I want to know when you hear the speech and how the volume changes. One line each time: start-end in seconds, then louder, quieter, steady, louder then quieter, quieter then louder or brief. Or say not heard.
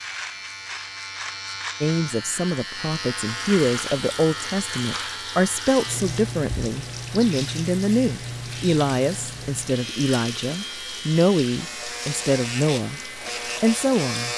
1.8-14.3 steady.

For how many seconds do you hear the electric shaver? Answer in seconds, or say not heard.
14 s.